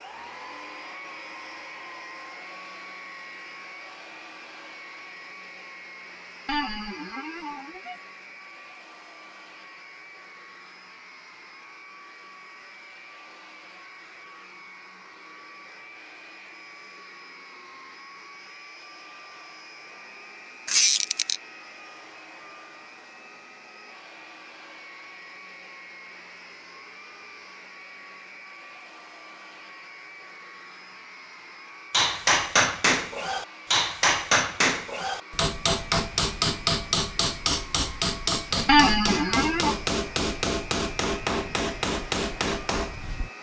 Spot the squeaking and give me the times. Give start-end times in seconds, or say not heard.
6.5-8.0, 20.6-21.4, 38.6-39.8.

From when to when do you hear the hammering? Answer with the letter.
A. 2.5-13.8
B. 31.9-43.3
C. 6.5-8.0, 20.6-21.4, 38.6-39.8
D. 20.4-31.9
B.